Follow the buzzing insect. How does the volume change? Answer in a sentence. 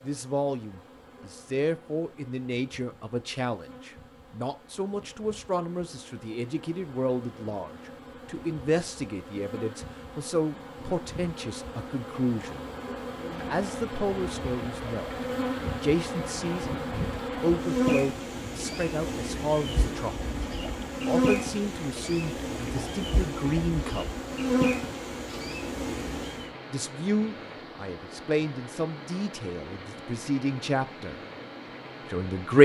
The volume of the buzzing insect goes up.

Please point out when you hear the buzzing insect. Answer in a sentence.
The buzzing insect can be heard from 0.0 to 26.5 s.